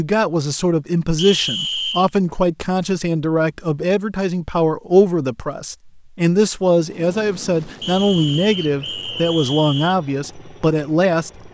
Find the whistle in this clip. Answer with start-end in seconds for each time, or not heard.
1.1-2.1, 7.8-9.9.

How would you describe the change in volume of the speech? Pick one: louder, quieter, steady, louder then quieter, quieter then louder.
steady.